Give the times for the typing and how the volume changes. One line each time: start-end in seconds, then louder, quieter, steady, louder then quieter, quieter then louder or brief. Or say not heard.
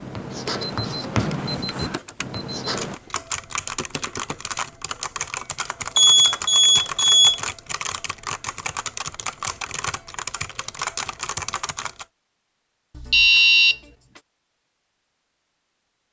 2.6-12.1 steady.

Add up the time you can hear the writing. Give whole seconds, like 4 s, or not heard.
3 s.